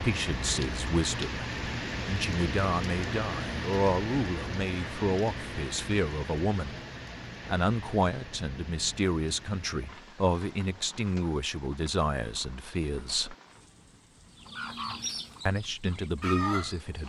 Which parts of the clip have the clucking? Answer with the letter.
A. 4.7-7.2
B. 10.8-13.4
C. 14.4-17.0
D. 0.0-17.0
C.